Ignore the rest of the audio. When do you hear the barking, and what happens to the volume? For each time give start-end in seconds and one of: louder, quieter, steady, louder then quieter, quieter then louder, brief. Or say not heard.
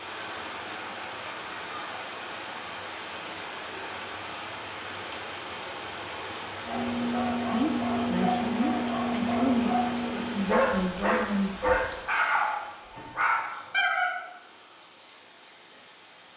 6.7-14.2 steady.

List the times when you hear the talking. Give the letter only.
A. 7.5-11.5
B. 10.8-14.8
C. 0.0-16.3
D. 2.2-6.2
A.